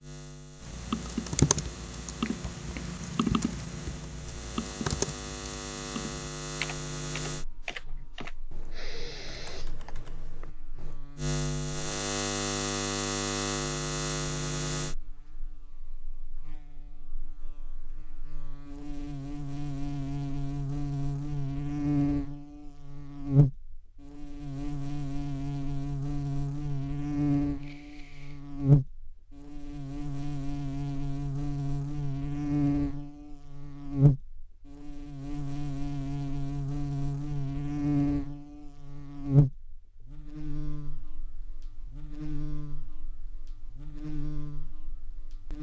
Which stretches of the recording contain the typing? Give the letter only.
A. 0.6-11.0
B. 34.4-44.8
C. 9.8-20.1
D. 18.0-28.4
A.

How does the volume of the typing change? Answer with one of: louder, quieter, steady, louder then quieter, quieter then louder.
quieter.